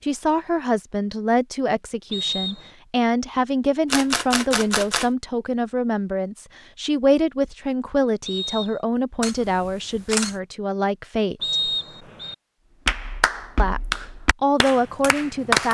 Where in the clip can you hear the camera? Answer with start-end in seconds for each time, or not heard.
3.9-5.1, 9.2-10.4.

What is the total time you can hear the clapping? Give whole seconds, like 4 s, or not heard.
3 s.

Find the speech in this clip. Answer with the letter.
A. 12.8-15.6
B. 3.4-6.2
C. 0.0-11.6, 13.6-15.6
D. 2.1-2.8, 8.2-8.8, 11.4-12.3
C.